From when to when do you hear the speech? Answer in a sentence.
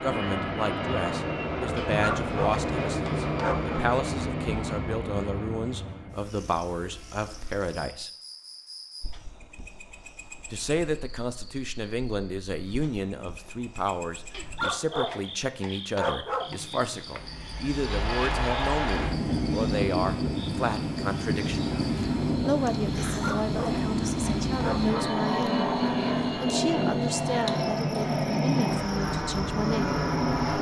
The speech can be heard from 0.0 to 8.1 s, from 10.5 to 21.7 s and from 22.4 to 30.0 s.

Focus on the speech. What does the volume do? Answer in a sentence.
The loudness of the speech stays about the same.